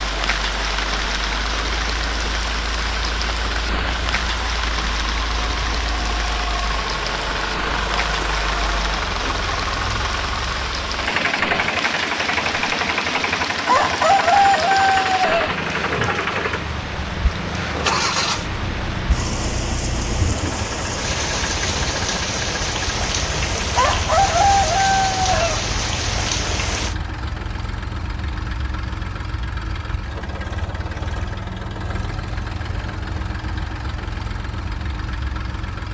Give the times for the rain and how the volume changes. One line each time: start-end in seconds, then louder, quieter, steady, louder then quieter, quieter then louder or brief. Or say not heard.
0.0-26.9 steady.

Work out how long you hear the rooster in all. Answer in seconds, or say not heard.
4 s.